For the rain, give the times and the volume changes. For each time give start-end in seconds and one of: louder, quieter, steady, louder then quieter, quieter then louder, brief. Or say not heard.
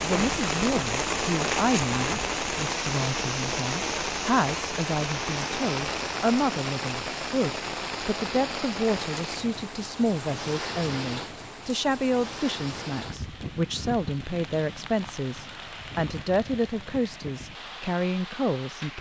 0.0-18.9 quieter.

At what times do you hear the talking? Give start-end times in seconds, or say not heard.
0.0-18.9.